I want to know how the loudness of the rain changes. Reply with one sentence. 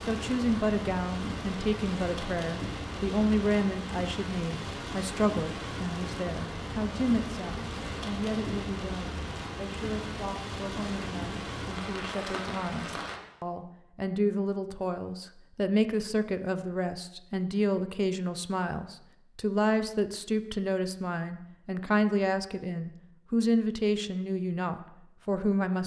The loudness of the rain stays about the same.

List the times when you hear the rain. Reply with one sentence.
The rain can be heard from 0.0 to 13.2 s.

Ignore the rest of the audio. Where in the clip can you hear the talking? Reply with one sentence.
The talking can be heard from 0.1 to 25.8 s.